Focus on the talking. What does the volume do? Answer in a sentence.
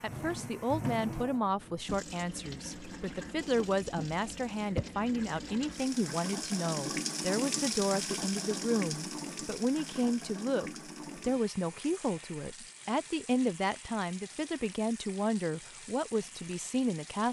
The loudness of the talking stays about the same.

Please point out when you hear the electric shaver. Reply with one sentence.
The electric shaver can't be heard in this clip.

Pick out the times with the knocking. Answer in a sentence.
The knocking can't be heard in this clip.